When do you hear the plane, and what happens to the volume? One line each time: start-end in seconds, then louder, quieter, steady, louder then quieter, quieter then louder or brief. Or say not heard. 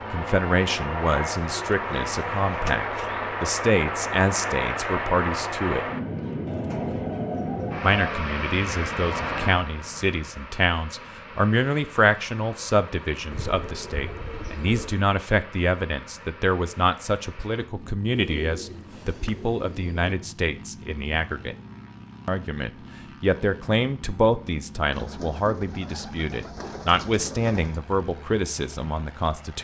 0.0-29.5 quieter.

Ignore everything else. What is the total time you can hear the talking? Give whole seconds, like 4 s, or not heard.
27 s.